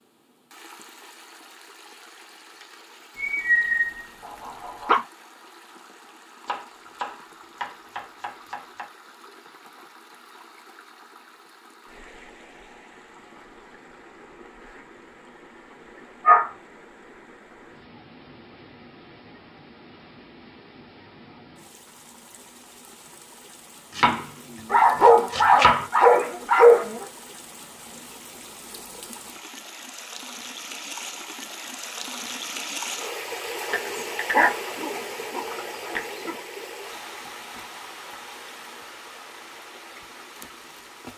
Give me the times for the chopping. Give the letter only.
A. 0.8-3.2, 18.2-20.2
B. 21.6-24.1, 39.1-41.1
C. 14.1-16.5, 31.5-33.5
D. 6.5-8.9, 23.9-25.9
D.